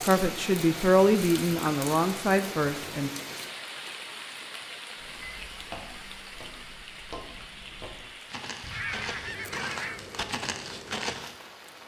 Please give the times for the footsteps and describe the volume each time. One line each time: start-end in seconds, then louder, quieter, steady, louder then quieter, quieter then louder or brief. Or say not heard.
5.0-11.3 louder.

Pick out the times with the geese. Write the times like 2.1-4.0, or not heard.
8.6-10.2.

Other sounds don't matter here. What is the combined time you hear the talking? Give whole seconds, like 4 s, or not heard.
3 s.